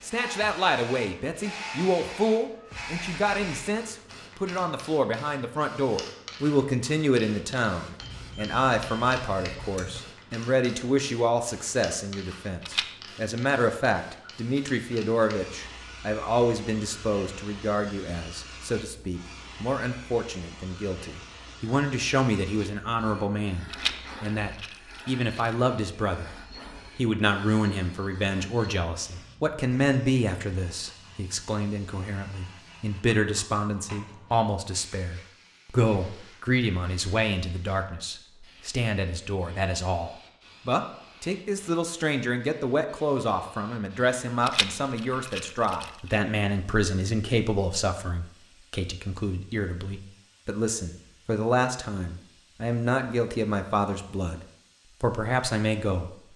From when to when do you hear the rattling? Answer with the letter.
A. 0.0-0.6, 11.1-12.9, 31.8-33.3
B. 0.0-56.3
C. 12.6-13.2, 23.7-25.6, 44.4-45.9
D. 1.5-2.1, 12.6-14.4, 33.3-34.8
C.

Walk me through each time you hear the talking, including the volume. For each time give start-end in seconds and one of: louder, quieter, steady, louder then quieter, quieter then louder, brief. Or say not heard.
0.0-56.3 steady.